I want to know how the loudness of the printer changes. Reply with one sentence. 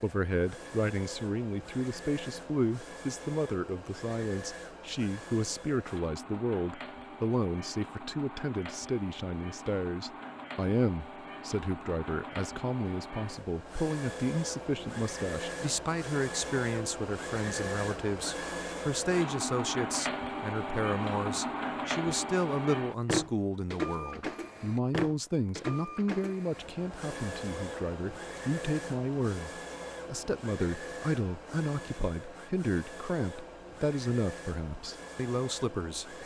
The loudness of the printer goes up, then down.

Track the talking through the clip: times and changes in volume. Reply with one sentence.
The talking can be heard from 0.0 to 36.2 s, at a steady volume.